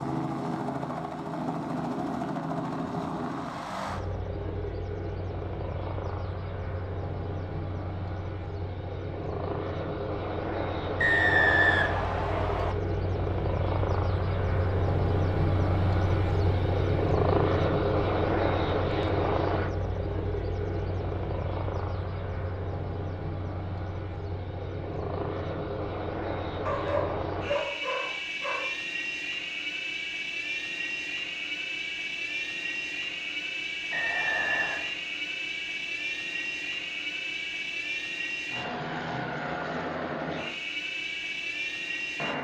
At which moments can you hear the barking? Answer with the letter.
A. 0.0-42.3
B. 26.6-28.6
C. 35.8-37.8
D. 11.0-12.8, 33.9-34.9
B.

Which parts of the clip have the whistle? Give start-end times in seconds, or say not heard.
11.0-12.8, 33.9-34.9.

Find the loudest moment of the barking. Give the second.
27 s.